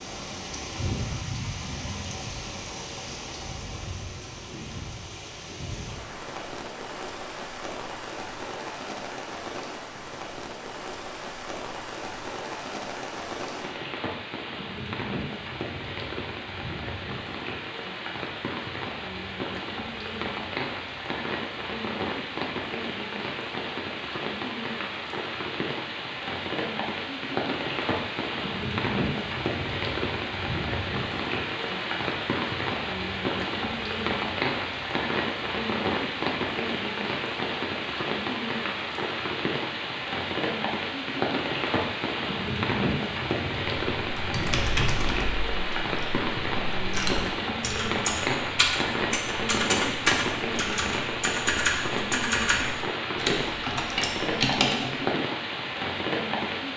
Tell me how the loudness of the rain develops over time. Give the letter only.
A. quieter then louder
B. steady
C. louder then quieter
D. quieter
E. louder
E.